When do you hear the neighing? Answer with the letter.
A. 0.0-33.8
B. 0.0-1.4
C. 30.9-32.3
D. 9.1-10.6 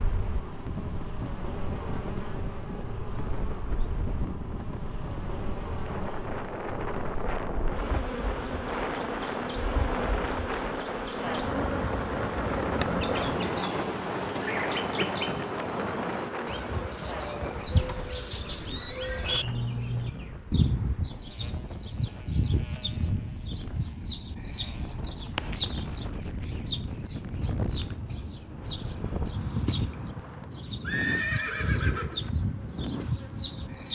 C.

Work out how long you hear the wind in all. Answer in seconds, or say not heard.
34 s.